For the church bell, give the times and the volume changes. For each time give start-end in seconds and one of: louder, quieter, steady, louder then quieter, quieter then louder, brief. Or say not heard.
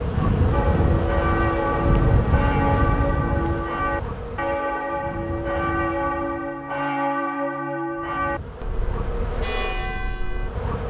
0.5-10.5 quieter.